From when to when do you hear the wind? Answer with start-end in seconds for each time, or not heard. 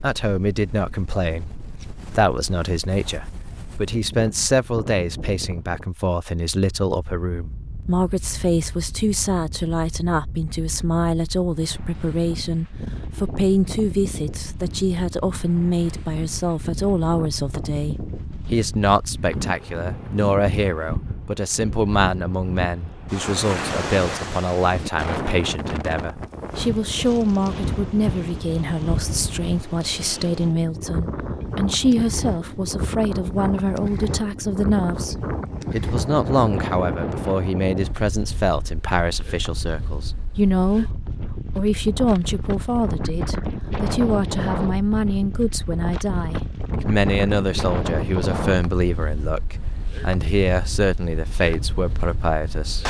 0.0-52.8.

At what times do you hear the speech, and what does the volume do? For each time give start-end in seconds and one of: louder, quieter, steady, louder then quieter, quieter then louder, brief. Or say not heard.
0.0-41.0 steady
41.5-52.8 steady.